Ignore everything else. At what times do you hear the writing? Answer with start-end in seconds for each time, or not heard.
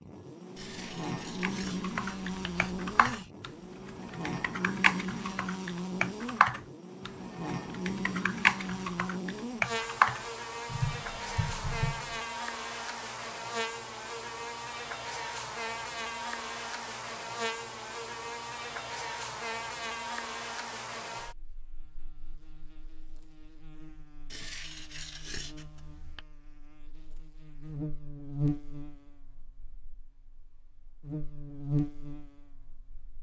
0.6-3.3, 24.3-26.2.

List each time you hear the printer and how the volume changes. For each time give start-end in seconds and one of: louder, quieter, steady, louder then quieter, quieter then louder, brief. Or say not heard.
not heard.